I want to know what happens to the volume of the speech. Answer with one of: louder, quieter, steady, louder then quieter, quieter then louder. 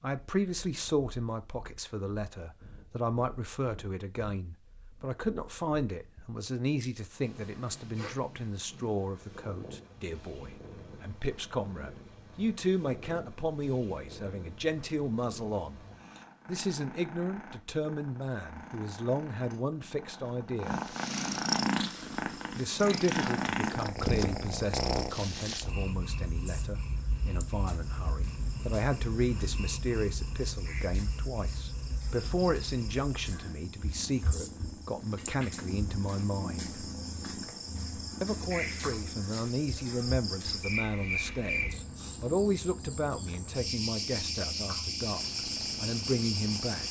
steady.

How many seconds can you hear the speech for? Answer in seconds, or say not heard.
43 s.